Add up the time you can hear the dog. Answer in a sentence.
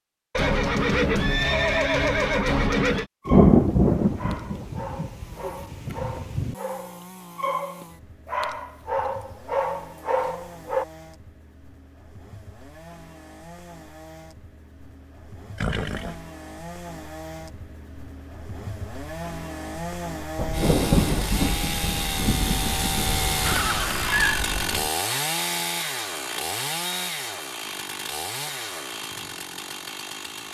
You can hear the dog for 8 seconds altogether.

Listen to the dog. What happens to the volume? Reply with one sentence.
The volume of the dog goes up.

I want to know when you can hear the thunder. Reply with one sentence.
The thunder can be heard from 3.2 to 6.5 s and from 20.4 to 24.9 s.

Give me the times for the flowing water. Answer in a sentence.
The flowing water can't be heard in this clip.